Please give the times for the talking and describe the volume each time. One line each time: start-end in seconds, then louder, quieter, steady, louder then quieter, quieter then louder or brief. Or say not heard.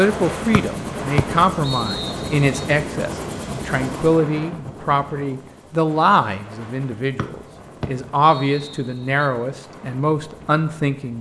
0.0-11.1 steady.